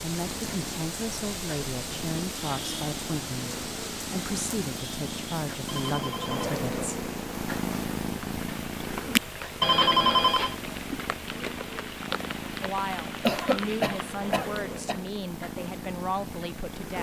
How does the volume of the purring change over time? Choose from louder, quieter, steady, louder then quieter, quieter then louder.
louder then quieter.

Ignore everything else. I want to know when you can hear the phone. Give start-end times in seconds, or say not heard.
5.7-6.5, 9.6-10.6.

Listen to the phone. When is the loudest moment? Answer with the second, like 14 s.
10 s.